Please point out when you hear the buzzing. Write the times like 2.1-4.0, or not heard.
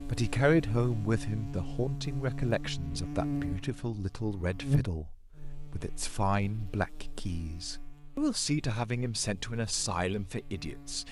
0.0-11.0.